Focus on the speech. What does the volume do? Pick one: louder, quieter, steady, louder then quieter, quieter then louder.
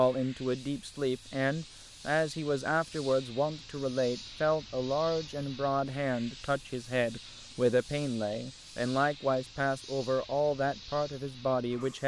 steady.